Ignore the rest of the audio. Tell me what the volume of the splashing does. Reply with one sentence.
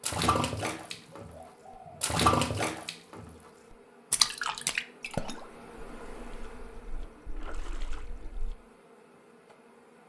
The volume of the splashing goes up, then down.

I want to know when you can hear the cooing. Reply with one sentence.
The cooing can be heard from 1.1 to 1.9 s and from 5.5 to 8.3 s.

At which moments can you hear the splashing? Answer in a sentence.
You can hear the splashing from 0.0 to 8.6 s.